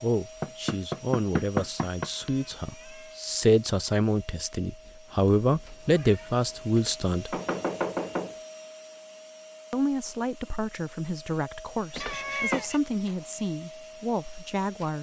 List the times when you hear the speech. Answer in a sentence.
You can hear the speech from 0.0 to 7.3 s and from 9.7 to 14.9 s.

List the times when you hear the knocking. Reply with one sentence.
The knocking can be heard from 0.4 to 2.1 s, from 6.8 to 8.3 s and from 11.9 to 12.7 s.